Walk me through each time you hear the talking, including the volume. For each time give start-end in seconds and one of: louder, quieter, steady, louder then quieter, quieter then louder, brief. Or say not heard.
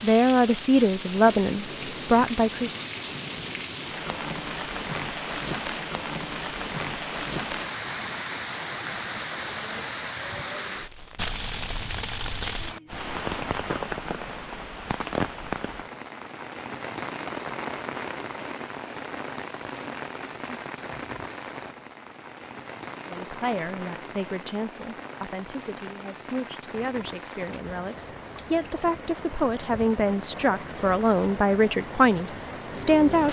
0.0-2.8 brief
23.1-33.2 louder.